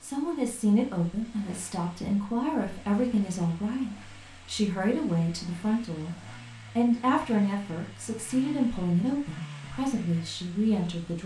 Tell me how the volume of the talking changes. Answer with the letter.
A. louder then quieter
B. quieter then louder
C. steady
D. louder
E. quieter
C.